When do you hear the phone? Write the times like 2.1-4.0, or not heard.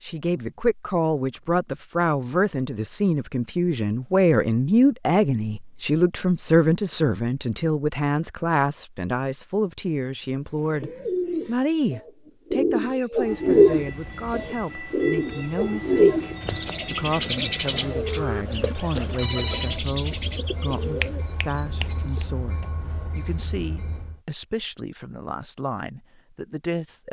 19.1-19.8.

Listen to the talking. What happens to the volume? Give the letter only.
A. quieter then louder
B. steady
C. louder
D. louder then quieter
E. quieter
E.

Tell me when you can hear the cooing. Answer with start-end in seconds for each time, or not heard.
10.5-22.4.